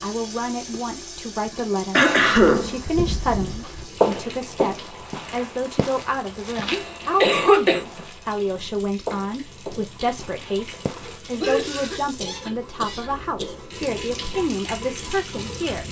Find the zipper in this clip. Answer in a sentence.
The zipper can't be heard in this clip.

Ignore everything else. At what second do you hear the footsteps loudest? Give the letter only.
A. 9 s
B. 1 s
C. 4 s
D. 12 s
C.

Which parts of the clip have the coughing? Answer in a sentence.
The coughing can be heard from 1.9 to 2.9 s, from 6.7 to 7.8 s and from 11.3 to 13.6 s.